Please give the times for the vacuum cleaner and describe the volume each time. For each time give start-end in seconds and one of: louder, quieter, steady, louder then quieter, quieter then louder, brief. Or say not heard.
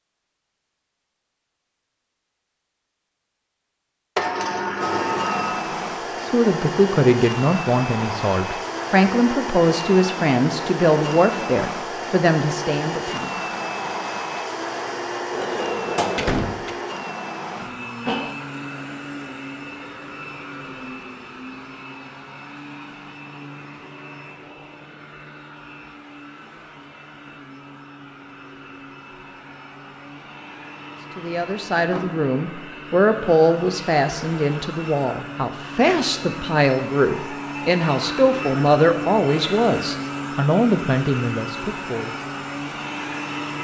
4.8-43.5 quieter then louder.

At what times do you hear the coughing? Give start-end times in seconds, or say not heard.
17.6-18.4.